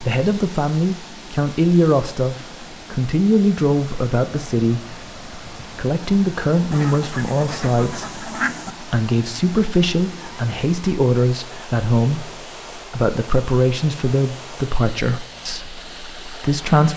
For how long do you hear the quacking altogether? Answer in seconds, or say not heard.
2 s.